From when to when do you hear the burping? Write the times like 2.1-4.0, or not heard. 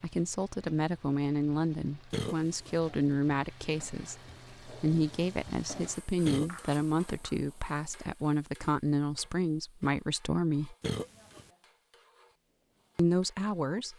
2.1-2.8, 6.2-6.8, 10.8-11.5.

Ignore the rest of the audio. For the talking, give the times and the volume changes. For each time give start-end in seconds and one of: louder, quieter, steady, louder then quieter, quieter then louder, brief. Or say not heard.
0.0-10.8 steady
12.9-13.9 brief.